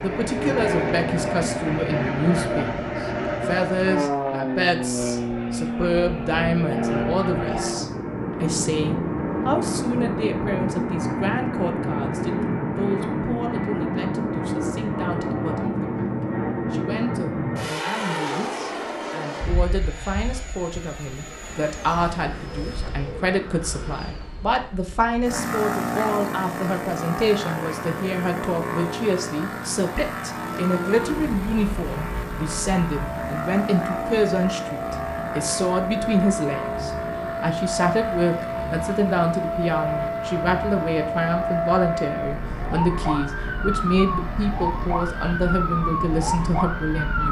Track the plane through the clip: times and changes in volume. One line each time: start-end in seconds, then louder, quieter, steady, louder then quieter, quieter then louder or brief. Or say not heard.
0.0-47.2 quieter.